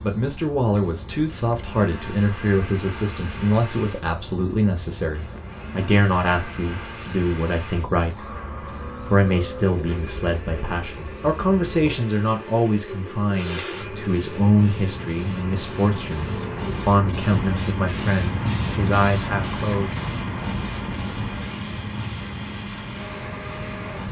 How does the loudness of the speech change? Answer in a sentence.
The loudness of the speech stays about the same.